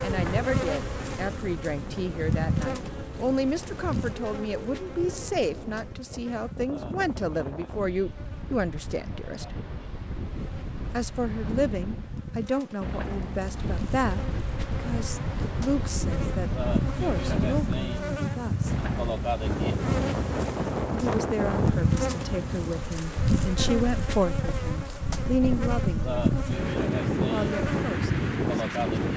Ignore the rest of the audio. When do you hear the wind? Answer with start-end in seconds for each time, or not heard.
0.0-29.1.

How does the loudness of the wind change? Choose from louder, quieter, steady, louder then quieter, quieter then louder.
louder.